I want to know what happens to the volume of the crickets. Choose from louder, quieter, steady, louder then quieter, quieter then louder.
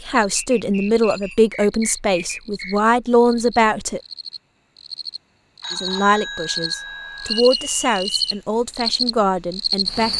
louder.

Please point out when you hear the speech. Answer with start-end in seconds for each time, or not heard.
0.1-4.0, 5.7-10.1.